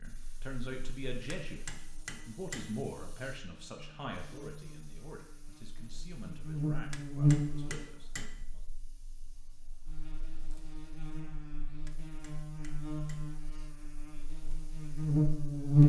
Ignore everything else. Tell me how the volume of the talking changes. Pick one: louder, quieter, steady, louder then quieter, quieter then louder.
quieter.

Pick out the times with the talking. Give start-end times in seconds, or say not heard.
0.0-8.7.